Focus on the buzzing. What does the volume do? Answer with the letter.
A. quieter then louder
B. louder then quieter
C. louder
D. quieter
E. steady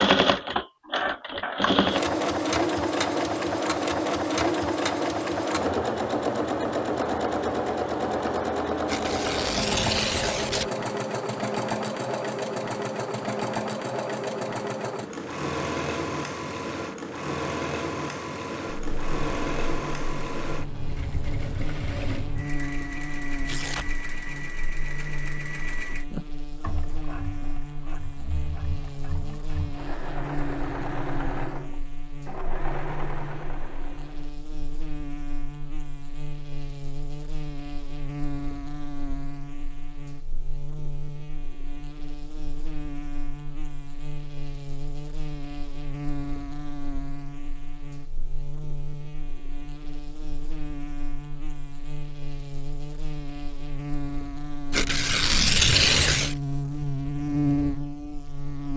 C.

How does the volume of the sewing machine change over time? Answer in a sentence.
The loudness of the sewing machine goes down.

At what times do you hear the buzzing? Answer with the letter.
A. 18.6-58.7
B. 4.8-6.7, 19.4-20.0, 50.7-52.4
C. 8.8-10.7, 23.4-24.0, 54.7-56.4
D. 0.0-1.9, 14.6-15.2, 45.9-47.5
A.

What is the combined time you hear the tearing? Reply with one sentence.
You can hear the tearing for 4 seconds altogether.